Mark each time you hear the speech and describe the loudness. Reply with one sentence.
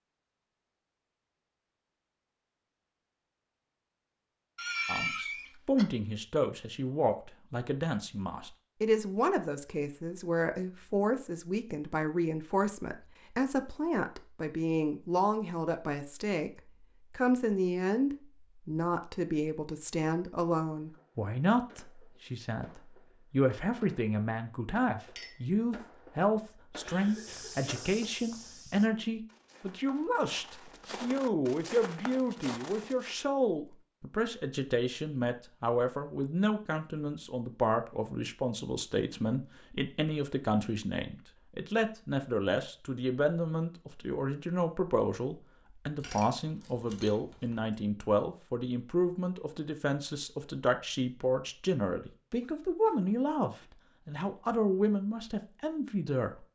The speech can be heard from 4.8 to 56.5 s, at a steady volume.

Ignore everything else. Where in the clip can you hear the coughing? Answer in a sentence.
You can hear the coughing from 4.5 to 5.8 s, from 26.8 to 27.7 s and from 52.4 to 53.7 s.